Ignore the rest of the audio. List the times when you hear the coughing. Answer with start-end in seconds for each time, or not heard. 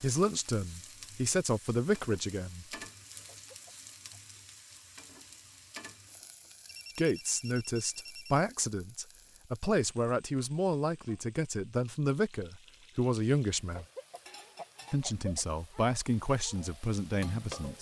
3.2-4.2, 13.8-15.4.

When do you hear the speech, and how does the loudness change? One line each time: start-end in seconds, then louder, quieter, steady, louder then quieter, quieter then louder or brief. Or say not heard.
0.0-2.6 brief
7.0-13.8 steady
14.9-17.7 brief.